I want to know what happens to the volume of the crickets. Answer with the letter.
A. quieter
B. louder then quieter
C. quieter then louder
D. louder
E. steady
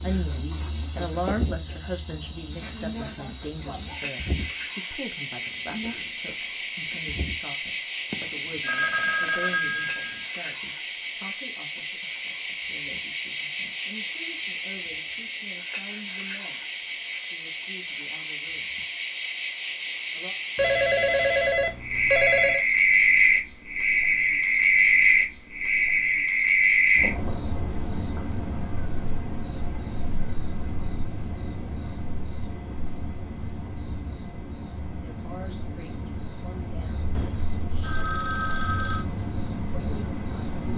A.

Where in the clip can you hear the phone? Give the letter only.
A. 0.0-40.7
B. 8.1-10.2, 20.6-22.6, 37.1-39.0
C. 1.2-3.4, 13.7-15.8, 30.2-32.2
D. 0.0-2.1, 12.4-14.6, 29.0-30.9
B.